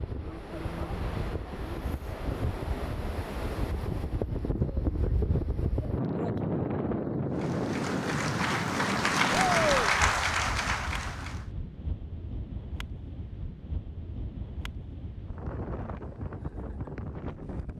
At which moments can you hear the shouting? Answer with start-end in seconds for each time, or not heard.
9.3-9.9.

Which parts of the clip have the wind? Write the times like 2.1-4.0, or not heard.
0.0-17.7.